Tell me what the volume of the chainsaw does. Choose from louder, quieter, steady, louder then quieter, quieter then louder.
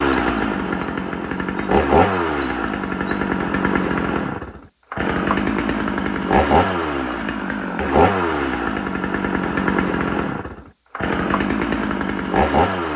steady.